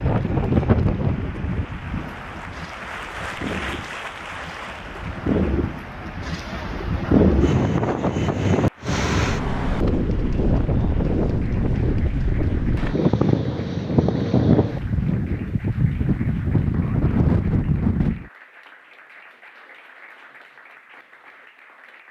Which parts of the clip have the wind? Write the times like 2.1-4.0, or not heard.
0.0-18.2.